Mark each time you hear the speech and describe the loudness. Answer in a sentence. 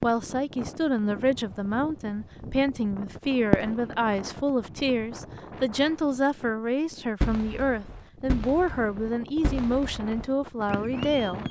The speech can be heard from 0.0 to 11.4 s, at a steady volume.